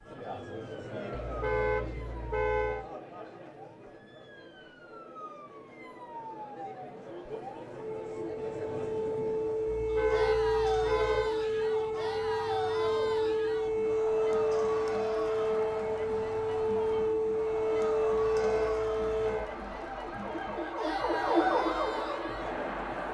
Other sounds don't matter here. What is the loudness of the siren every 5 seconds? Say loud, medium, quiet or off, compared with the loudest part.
quiet, medium, loud, loud, loud.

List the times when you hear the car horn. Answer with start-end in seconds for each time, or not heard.
1.2-2.9, 9.8-11.3, 18.1-19.5.